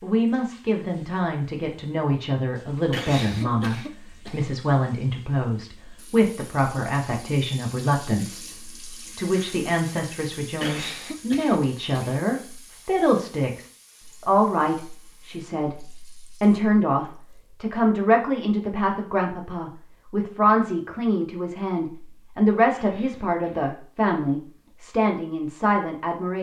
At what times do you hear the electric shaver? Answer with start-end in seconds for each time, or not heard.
not heard.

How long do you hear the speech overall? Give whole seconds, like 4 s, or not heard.
26 s.